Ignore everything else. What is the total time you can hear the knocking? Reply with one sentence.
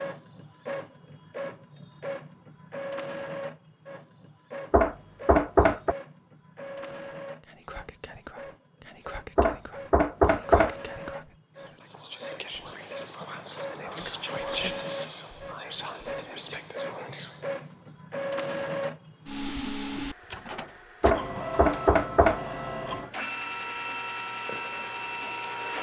The knocking can be heard for 4 seconds in total.